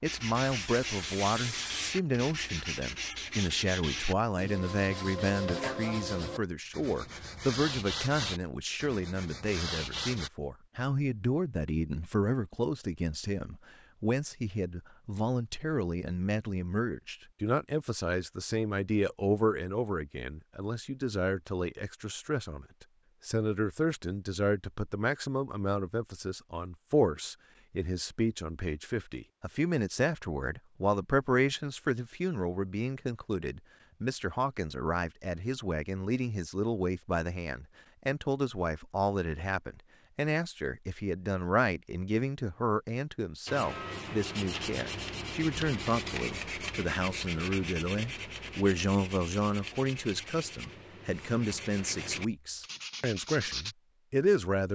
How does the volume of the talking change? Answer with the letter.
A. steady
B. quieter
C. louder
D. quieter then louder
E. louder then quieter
A.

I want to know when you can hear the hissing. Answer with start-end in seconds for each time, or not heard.
0.5-1.9.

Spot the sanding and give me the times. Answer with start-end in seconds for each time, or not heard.
0.1-10.3, 43.5-53.8.